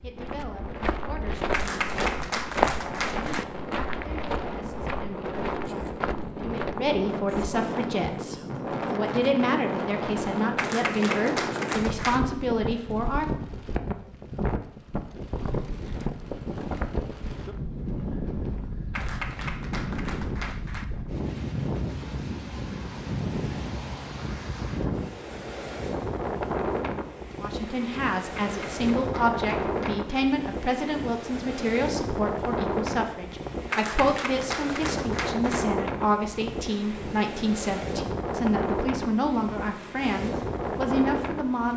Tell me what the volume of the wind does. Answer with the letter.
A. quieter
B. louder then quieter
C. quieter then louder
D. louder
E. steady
E.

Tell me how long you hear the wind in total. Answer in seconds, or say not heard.
42 s.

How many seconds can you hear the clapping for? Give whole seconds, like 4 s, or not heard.
9 s.